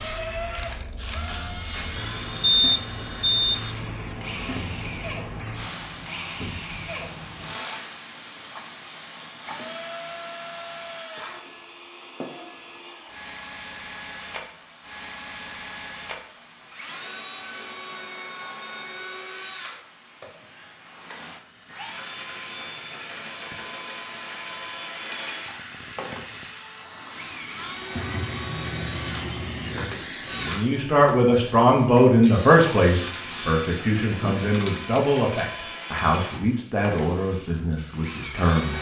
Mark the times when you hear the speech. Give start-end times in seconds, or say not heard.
29.6-38.7.